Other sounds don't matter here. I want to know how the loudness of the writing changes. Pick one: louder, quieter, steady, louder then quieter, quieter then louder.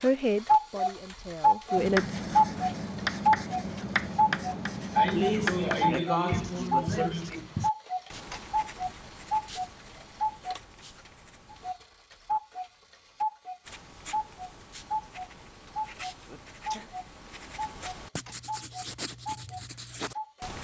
quieter then louder.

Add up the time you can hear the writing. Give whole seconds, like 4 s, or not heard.
17 s.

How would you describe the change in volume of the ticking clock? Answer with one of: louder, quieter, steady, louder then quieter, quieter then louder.
quieter.